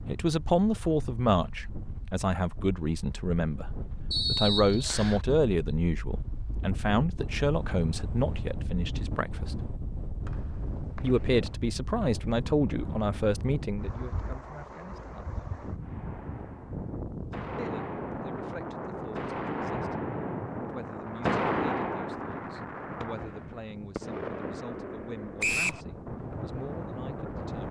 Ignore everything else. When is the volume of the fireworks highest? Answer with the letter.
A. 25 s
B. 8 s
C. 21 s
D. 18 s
C.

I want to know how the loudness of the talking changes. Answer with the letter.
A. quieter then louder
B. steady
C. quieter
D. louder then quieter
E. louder
C.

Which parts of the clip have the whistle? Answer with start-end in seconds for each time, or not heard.
4.1-5.2, 10.2-11.5, 25.4-25.8.